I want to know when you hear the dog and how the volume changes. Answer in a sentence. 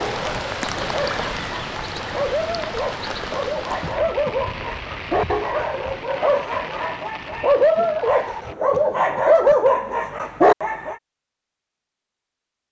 The dog can be heard from 0.0 to 10.9 s, getting louder.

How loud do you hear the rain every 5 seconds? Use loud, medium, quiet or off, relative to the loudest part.
loud, medium, off.